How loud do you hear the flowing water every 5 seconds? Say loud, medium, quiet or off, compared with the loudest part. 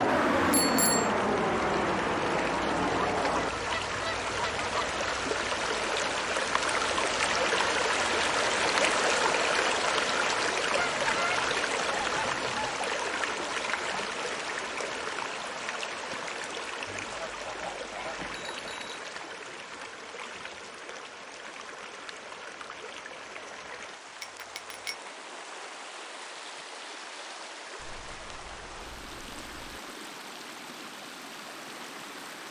medium, loud, loud, medium, quiet, quiet, quiet.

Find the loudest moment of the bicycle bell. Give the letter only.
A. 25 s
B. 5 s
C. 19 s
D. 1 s
D.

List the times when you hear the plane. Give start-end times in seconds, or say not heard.
0.0-3.5.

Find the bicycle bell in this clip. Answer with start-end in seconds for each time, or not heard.
0.1-1.1, 18.1-18.9, 24.2-24.9.